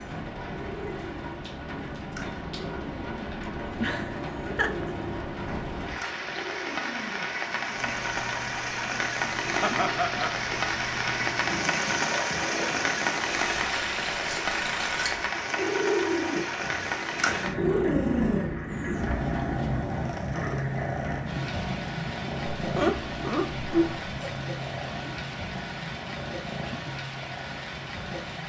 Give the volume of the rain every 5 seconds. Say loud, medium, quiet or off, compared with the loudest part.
medium, loud, loud, loud, medium, medium.